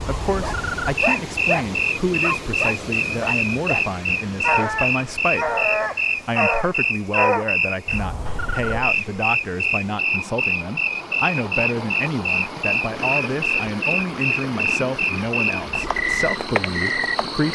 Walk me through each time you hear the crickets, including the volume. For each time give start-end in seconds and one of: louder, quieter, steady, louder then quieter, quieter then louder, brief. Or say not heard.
0.0-17.4 steady.